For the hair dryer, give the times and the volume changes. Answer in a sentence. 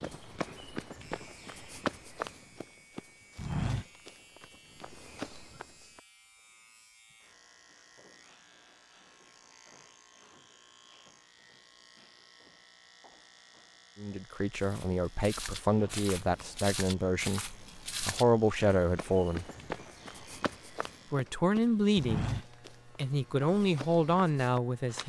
The hair dryer can't be heard in this clip.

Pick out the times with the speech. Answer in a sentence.
The speech can be heard from 13.9 to 19.4 s, from 21.1 to 22.3 s and from 22.9 to 25.0 s.